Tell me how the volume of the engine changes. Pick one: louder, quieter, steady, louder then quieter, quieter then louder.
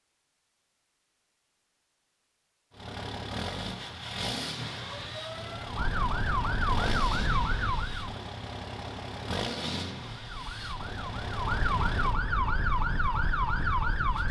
quieter.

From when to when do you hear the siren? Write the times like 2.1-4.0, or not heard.
4.8-8.2, 10.2-14.2.